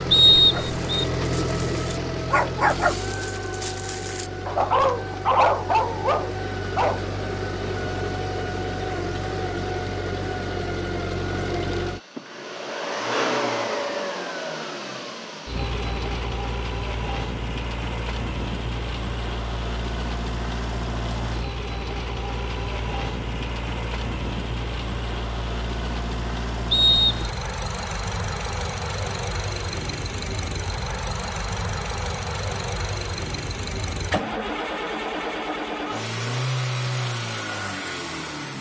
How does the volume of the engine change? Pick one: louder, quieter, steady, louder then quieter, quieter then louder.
steady.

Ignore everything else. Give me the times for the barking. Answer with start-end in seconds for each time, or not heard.
0.5-7.0.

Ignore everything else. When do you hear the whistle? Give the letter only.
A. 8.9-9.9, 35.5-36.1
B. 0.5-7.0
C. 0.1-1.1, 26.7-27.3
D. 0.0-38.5
C.